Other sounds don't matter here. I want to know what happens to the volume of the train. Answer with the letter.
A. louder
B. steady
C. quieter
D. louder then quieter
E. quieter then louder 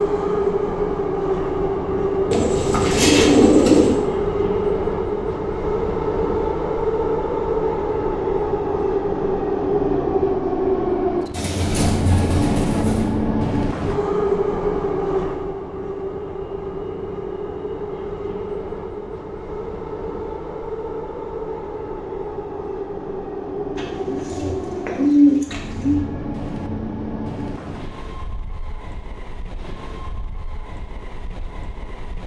C.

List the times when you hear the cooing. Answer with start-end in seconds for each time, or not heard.
2.3-4.0, 11.3-13.1, 23.8-26.1.